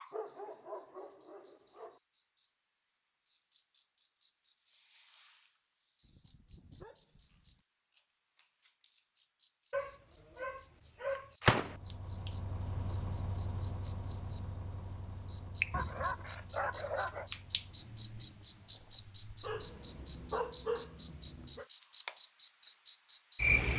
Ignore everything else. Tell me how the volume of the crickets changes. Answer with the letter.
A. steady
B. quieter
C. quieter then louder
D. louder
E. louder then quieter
D.